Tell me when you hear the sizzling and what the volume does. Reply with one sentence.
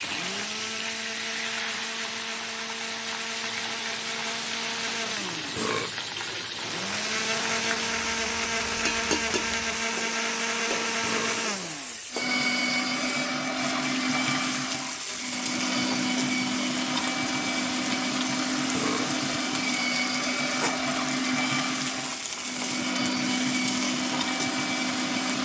The sizzling can be heard from 0.0 to 25.3 s, at a steady volume.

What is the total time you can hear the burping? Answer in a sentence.
The burping can be heard for 2 seconds in total.